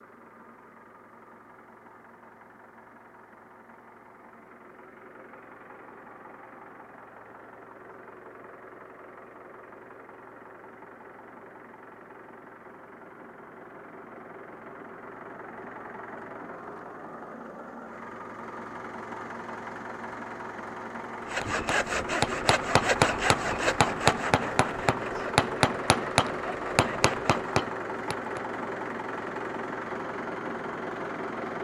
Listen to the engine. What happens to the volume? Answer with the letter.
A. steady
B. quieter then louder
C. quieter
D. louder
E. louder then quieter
D.